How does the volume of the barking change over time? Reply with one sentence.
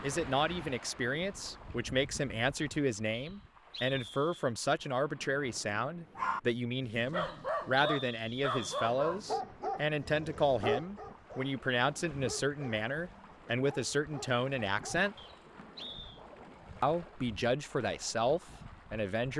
The loudness of the barking goes down.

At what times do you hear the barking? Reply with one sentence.
You can hear the barking from 6.1 to 15.1 s.